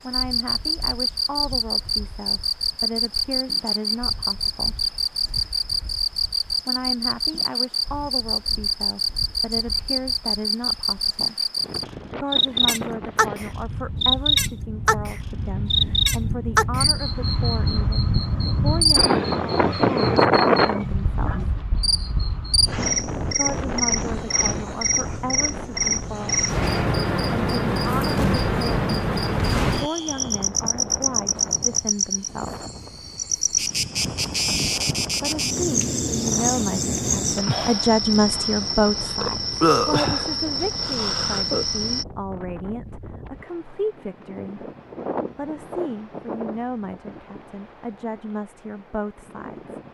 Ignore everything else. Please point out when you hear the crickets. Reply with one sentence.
The crickets can be heard from 0.1 to 42.0 s.